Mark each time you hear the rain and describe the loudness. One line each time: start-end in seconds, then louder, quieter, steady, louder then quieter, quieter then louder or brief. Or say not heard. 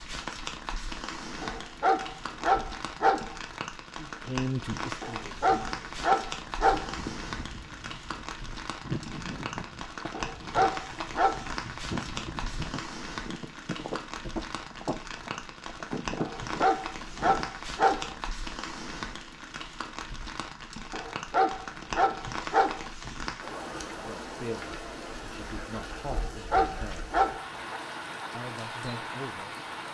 0.0-29.8 steady.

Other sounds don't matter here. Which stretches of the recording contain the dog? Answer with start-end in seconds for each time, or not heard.
1.4-3.4, 5.0-7.0, 10.1-11.4, 16.1-18.1, 20.9-22.9, 26.1-27.8.